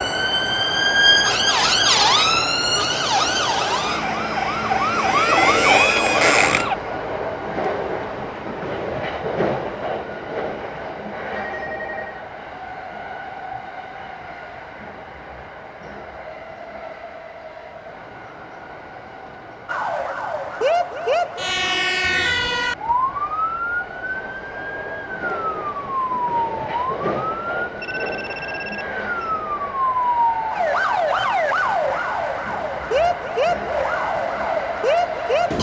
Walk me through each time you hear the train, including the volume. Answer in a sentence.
You can hear the train from 0.0 to 35.5 s, getting quieter then louder.